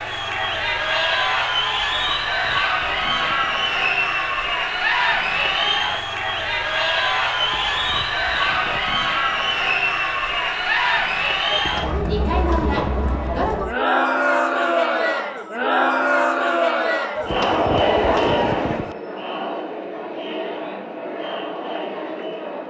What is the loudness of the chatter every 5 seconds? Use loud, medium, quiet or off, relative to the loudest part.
loud, loud, loud, loud, medium.